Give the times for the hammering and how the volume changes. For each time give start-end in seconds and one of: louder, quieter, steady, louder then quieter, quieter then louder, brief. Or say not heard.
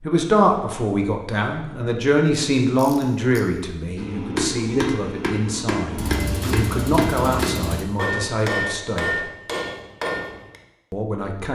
4.0-10.6 steady.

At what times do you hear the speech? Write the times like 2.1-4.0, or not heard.
0.0-9.1, 10.9-11.4.